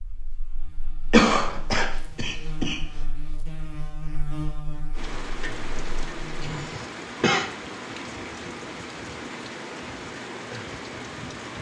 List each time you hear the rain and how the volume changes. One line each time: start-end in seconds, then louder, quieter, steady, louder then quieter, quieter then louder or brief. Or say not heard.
4.9-11.5 steady.